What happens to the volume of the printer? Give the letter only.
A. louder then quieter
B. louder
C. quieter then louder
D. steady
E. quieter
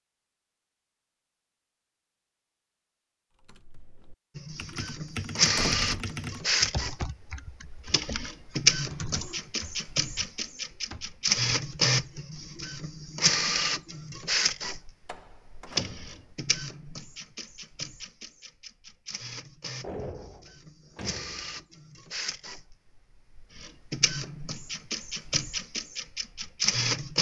C.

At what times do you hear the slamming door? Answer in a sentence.
The slamming door can be heard from 5.5 to 6.1 s, from 15.1 to 16.2 s and from 19.8 to 21.6 s.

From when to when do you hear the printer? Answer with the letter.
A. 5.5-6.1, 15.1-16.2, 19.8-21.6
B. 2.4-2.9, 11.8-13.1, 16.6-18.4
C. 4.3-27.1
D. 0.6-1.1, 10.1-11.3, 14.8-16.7
C.